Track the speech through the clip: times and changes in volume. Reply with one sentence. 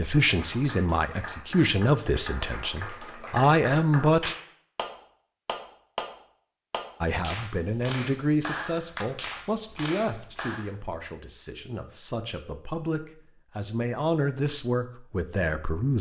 You can hear the speech from 0.0 to 4.3 s, getting quieter then louder; and from 7.0 to 15.9 s, getting quieter then louder.